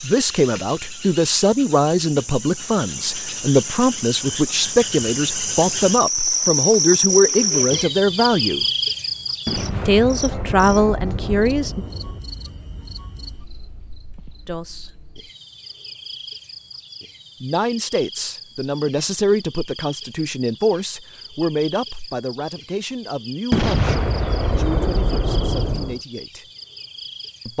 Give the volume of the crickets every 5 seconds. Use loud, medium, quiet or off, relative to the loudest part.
medium, loud, quiet, quiet, quiet, quiet.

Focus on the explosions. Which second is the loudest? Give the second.
24 s.